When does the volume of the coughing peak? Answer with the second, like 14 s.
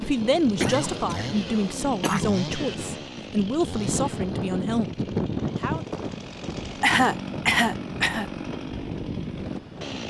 7 s.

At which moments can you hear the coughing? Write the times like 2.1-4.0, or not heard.
0.6-2.4, 6.8-8.2.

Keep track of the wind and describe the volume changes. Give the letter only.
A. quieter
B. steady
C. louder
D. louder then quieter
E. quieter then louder
D.